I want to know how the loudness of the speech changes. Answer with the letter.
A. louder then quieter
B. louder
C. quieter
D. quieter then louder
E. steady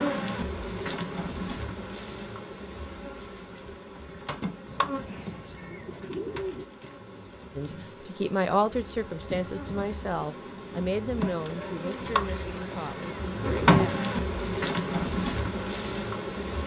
C.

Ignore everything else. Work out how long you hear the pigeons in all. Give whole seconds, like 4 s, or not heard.
4 s.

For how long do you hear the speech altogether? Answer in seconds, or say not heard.
6 s.